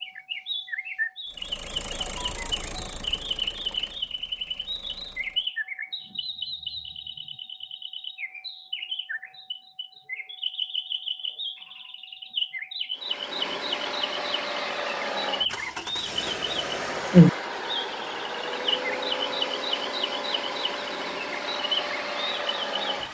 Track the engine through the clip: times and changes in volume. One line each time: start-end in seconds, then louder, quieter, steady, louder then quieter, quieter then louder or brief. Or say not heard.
1.3-5.5 quieter
12.9-23.0 steady.